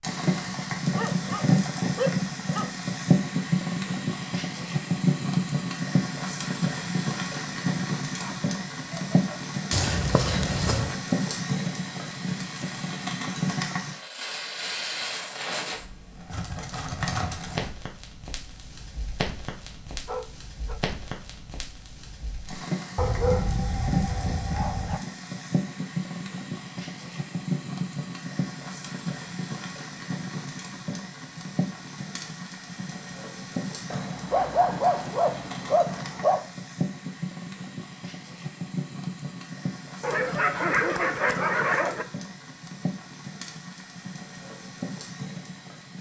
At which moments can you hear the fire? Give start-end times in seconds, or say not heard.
0.0-45.9.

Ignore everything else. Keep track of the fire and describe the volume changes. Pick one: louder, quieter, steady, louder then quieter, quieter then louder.
quieter.